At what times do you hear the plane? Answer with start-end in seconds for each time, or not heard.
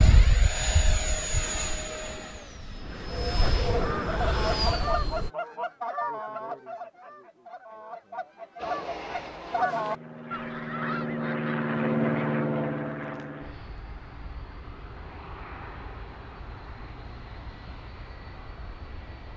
0.0-5.3, 8.6-19.3.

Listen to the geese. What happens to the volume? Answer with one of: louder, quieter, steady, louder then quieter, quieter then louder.
quieter then louder.